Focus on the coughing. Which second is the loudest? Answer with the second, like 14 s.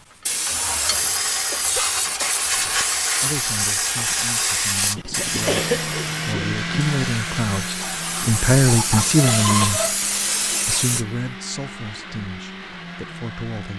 6 s.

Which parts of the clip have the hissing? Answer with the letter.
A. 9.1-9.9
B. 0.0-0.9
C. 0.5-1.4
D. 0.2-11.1
D.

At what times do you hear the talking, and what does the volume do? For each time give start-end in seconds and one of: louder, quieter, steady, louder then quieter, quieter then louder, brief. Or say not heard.
3.2-13.7 louder then quieter.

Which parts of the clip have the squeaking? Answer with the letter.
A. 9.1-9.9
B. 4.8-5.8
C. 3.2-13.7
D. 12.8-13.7
A.